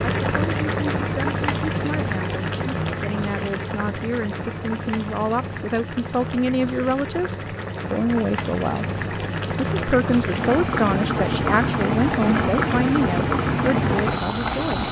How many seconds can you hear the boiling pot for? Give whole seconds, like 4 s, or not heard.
15 s.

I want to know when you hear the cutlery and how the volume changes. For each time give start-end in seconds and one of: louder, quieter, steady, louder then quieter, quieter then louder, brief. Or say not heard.
not heard.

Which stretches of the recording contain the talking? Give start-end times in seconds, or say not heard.
0.2-8.8, 9.6-14.8.